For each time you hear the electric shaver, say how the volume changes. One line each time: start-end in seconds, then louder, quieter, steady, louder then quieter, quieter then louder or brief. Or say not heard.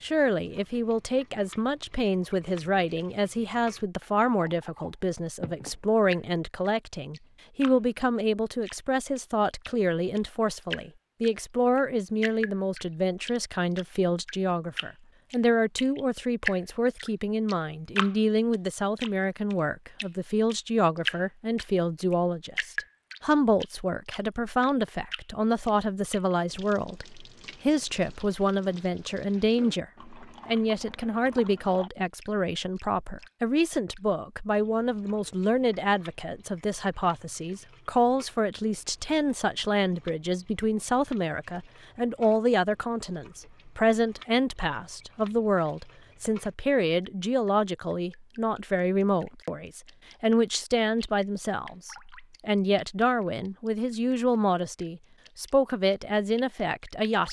not heard.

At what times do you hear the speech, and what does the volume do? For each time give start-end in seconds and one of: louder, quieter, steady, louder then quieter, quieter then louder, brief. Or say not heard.
0.0-57.2 steady.